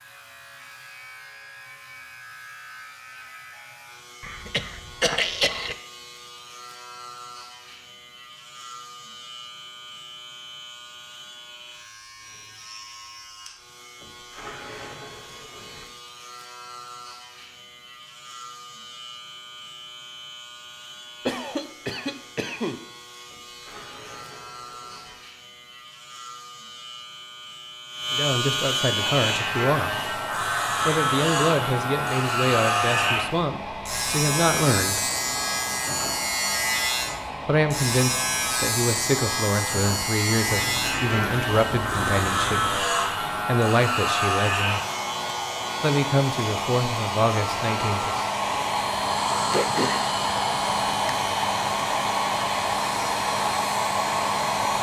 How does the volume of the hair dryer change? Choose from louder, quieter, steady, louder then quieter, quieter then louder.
louder.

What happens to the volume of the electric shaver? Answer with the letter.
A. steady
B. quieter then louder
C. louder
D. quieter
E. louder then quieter
C.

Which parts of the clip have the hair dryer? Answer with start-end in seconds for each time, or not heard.
29.2-54.7.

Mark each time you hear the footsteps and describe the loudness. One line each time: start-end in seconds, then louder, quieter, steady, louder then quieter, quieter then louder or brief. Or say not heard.
not heard.